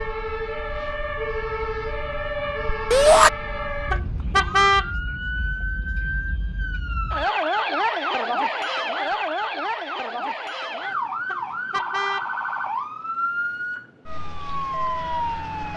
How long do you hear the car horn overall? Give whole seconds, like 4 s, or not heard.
2 s.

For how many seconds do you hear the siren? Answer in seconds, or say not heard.
16 s.